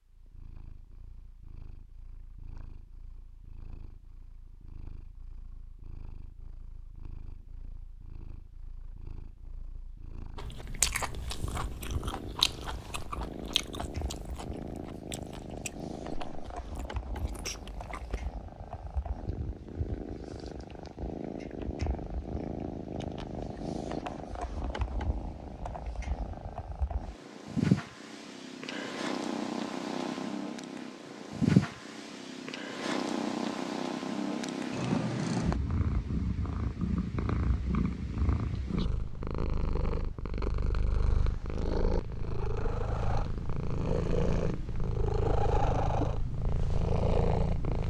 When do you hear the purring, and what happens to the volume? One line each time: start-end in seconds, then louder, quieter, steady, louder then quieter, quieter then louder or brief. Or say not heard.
0.0-47.8 louder.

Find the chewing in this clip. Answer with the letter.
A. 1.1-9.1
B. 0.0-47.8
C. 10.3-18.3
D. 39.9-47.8
C.